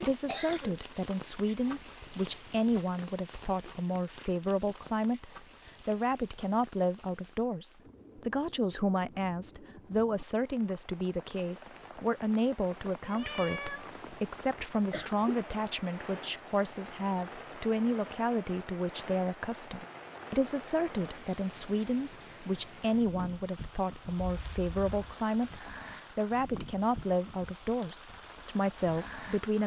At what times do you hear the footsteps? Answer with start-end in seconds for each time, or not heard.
not heard.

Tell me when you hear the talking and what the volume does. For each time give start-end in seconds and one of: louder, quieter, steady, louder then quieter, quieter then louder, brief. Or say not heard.
0.0-29.6 steady.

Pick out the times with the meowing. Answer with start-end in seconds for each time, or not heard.
13.0-14.2.